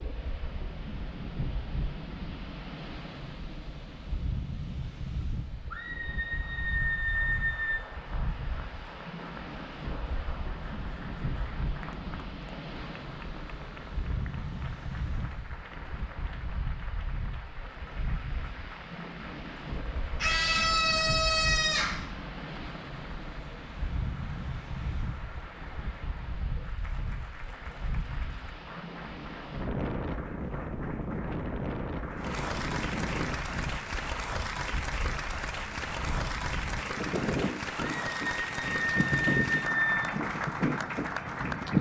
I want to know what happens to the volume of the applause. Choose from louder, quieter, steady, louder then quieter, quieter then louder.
louder.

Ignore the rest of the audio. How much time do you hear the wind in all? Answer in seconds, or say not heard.
42 s.